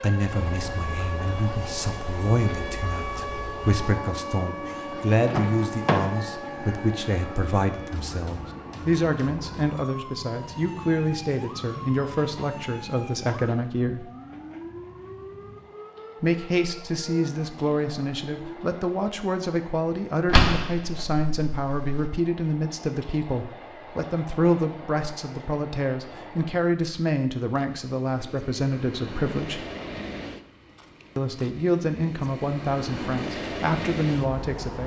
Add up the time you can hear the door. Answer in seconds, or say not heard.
3 s.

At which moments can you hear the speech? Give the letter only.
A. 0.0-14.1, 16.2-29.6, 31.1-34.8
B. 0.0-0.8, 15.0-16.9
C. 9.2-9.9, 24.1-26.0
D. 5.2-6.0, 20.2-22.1
A.